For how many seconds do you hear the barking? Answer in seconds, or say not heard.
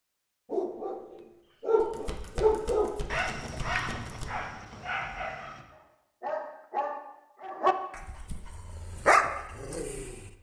10 s.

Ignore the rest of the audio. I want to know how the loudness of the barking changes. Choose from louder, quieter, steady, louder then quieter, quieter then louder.
quieter then louder.